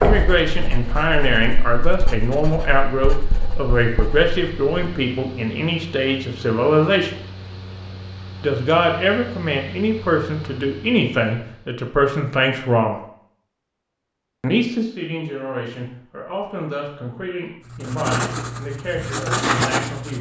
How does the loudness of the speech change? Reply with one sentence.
The volume of the speech goes down.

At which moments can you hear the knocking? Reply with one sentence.
The knocking can be heard from 0.0 to 0.4 s.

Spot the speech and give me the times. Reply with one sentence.
You can hear the speech from 0.0 to 7.2 s, from 8.4 to 13.0 s and from 14.4 to 20.1 s.